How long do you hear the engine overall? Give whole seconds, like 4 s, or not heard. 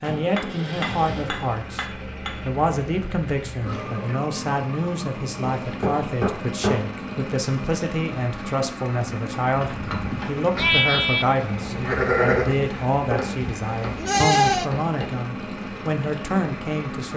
17 s.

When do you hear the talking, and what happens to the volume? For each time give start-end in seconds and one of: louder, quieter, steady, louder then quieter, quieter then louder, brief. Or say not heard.
0.0-17.1 steady.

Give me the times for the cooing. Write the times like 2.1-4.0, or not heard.
not heard.